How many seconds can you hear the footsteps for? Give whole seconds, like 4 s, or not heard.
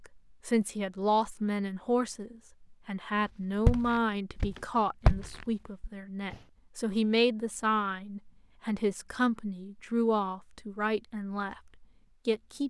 3 s.